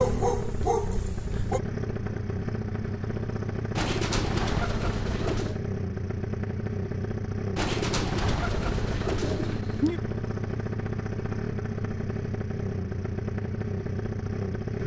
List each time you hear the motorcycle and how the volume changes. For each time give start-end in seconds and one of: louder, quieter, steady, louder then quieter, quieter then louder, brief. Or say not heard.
0.0-14.8 steady.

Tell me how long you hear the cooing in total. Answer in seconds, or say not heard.
4 s.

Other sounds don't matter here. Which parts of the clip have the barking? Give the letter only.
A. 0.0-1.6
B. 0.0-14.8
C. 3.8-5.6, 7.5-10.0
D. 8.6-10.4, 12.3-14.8
A.